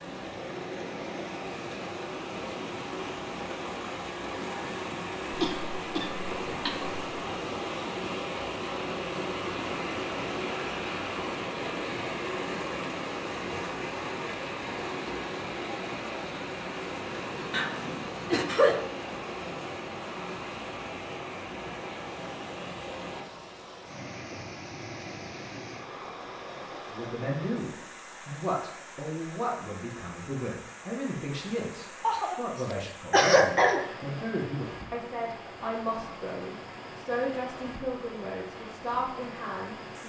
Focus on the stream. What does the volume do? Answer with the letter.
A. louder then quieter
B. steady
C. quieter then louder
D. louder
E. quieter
E.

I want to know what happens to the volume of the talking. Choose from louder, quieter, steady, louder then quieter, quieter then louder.
steady.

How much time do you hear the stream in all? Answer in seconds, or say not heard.
40 s.